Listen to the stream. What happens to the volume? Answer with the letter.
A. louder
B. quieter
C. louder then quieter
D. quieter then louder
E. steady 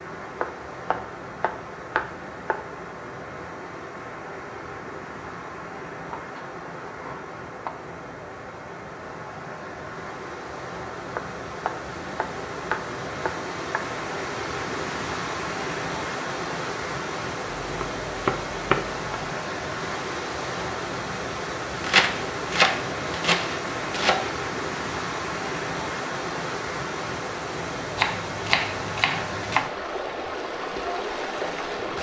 A.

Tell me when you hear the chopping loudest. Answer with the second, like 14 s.
22 s.